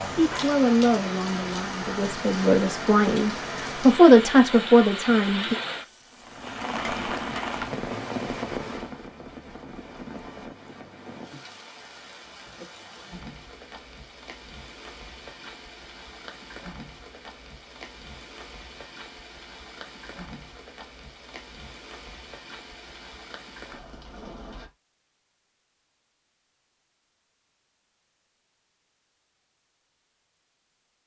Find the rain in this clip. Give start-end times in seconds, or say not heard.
0.0-24.7.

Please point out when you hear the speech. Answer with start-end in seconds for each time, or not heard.
0.0-5.5.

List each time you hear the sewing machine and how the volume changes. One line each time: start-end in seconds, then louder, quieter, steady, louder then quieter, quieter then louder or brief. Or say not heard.
not heard.